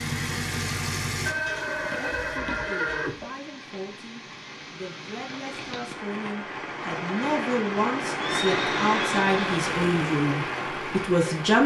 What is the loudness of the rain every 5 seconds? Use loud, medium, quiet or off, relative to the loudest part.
quiet, loud, loud.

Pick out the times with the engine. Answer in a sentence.
The engine can be heard from 0.0 to 2.4 s and from 9.5 to 11.6 s.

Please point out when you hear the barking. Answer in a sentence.
You can't hear the barking here.